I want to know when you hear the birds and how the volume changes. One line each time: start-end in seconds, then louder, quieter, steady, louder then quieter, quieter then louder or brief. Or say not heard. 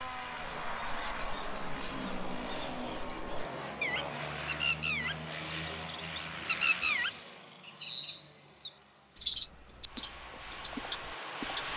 0.0-11.7 louder.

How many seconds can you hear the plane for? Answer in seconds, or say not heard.
12 s.